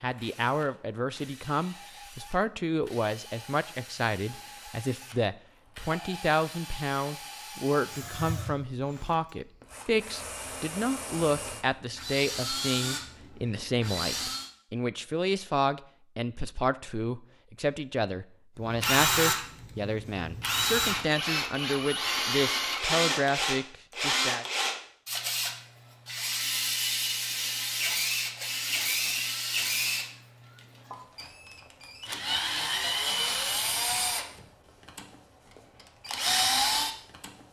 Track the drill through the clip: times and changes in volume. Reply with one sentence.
You can hear the drill from 0.0 to 14.5 s, getting louder; and from 18.6 to 37.4 s, at a steady volume.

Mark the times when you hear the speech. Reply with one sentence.
You can hear the speech from 0.0 to 24.4 s.